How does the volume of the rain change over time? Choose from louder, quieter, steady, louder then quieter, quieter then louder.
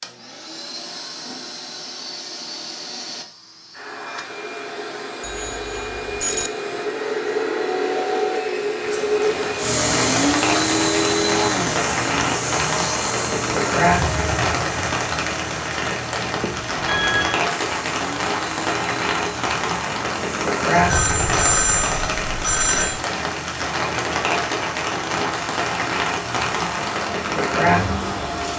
steady.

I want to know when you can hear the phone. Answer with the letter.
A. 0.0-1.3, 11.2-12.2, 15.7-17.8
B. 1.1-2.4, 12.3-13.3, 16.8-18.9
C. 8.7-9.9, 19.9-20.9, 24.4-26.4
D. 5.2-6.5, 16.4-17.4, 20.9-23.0
D.